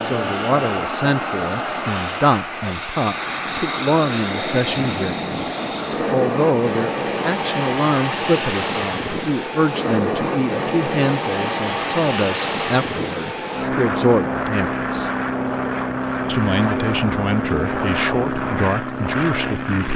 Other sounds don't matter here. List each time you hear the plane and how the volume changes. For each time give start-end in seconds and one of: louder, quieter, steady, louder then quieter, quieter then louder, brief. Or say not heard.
0.0-19.9 steady.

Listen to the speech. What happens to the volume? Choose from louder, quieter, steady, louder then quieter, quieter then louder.
steady.